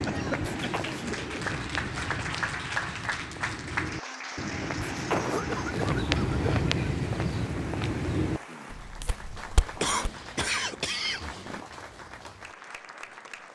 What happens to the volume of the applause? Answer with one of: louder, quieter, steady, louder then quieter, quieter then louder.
quieter.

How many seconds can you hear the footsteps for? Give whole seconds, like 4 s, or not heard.
10 s.